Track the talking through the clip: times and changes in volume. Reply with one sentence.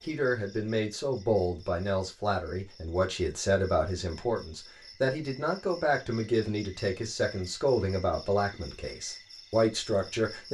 The talking can be heard from 0.0 to 10.4 s, at a steady volume.